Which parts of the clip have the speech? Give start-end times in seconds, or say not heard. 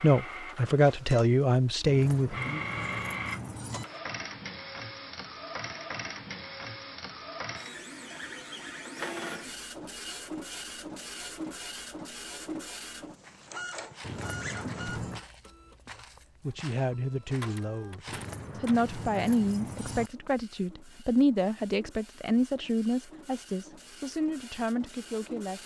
0.0-2.6, 15.9-25.6.